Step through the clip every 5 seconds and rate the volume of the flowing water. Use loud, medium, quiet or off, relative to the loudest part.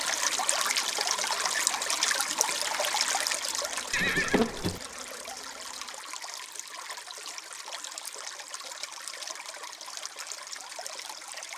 loud, medium, medium.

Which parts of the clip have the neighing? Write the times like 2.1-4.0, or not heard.
3.9-4.8.